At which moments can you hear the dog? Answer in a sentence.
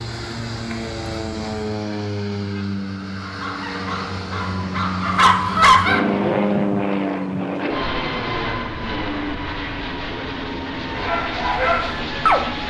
The dog can be heard from 3.1 to 6.0 s and from 10.9 to 12.4 s.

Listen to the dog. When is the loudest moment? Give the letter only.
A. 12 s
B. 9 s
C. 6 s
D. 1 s
C.